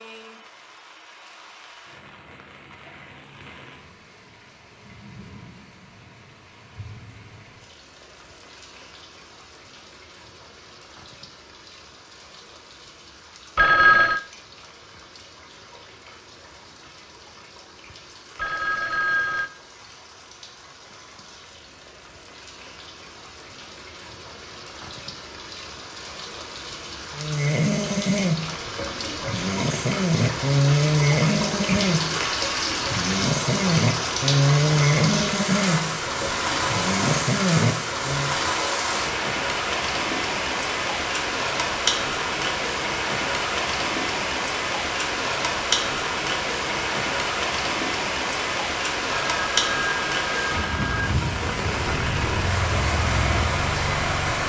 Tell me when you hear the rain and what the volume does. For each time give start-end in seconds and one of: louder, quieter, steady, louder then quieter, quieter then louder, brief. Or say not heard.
0.0-54.4 louder.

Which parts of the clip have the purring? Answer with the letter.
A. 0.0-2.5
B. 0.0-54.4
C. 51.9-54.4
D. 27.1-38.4
C.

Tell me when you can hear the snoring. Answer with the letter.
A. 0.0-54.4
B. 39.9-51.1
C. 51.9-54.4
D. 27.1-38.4
D.